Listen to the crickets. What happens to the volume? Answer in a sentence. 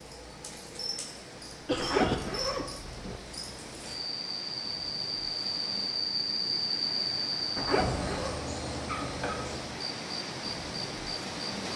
The loudness of the crickets goes up, then down.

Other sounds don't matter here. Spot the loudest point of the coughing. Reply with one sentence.
The loudest moment of the coughing is at 2 seconds.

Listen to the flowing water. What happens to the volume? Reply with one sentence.
The loudness of the flowing water goes up.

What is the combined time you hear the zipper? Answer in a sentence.
The zipper can be heard for 2 seconds in total.